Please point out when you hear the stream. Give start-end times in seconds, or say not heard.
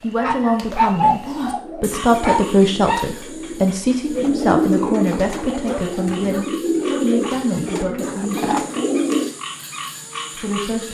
not heard.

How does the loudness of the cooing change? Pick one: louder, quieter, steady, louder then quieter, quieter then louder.
louder.